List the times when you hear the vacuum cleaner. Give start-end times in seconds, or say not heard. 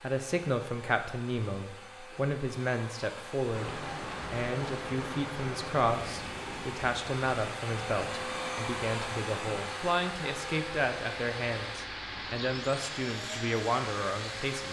0.0-14.6.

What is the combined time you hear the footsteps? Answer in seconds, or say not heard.
not heard.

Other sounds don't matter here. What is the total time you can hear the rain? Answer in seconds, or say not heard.
11 s.